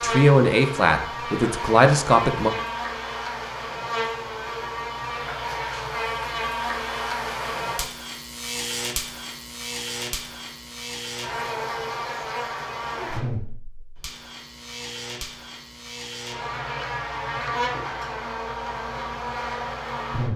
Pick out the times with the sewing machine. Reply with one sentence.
The sewing machine can't be heard in this clip.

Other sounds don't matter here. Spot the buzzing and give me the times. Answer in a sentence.
You can hear the buzzing from 0.0 to 20.3 s.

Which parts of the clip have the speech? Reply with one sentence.
The speech can be heard from 0.0 to 2.5 s.